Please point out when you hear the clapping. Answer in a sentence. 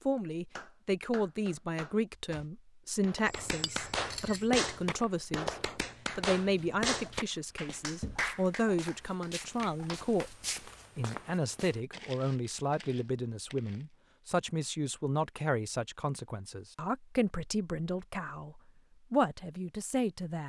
You can hear the clapping from 0.6 to 10.3 s.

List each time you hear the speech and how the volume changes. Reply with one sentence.
The speech can be heard from 0.1 to 20.4 s, at a steady volume.